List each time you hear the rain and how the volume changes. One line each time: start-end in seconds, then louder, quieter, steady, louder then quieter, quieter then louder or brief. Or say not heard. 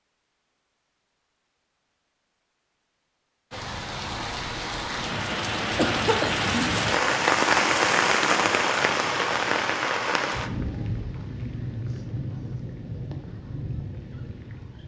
3.5-14.8 louder then quieter.